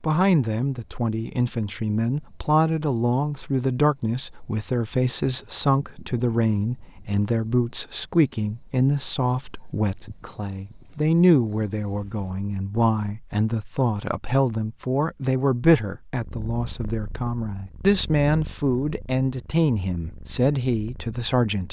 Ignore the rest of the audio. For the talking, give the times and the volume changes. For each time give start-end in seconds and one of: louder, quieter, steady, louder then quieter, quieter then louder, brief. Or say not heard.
0.0-21.6 steady.